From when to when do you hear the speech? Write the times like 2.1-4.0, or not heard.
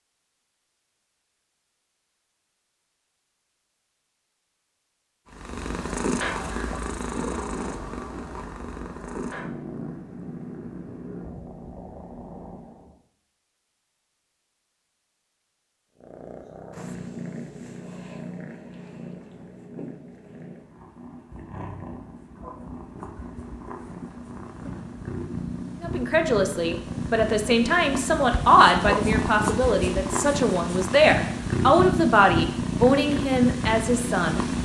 25.8-34.4.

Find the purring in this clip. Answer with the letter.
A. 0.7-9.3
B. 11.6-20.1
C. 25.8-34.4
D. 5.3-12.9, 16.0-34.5
D.